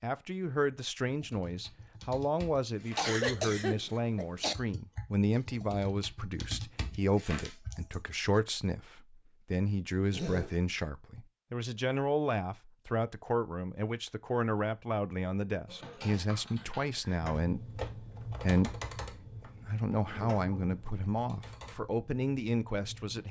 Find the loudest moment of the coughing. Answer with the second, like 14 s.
3 s.